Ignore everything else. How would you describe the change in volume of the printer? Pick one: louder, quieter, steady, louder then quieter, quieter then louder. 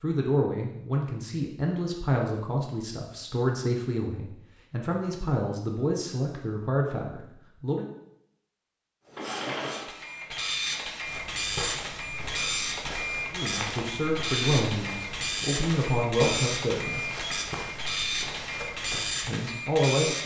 steady.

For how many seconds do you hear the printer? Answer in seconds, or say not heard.
11 s.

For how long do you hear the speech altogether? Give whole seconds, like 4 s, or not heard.
13 s.